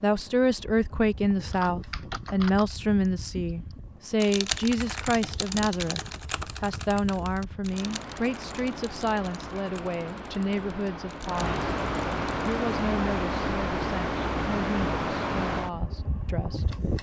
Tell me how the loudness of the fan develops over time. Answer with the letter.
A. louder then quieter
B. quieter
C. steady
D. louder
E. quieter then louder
D.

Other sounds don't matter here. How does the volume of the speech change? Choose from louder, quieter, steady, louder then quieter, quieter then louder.
quieter.